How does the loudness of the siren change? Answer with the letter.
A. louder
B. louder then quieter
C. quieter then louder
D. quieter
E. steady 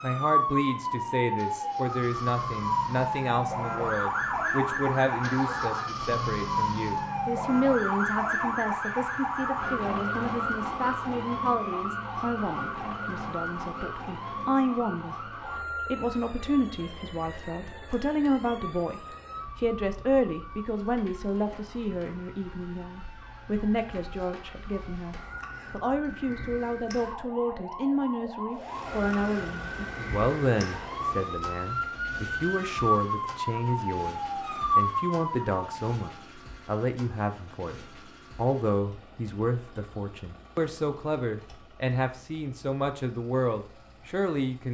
C.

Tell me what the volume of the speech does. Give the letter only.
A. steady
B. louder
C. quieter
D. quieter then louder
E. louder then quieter
A.